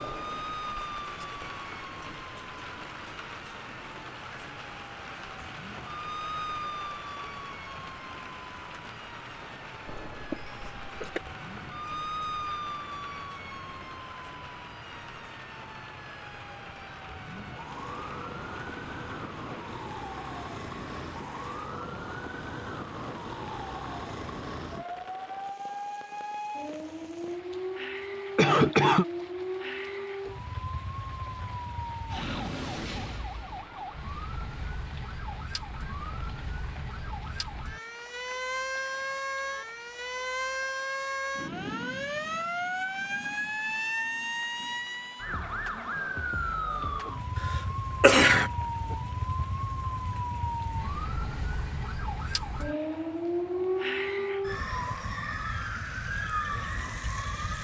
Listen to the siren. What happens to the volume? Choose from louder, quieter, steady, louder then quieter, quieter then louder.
louder.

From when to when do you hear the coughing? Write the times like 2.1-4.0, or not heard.
10.1-11.2, 28.4-29.1, 48.0-48.5.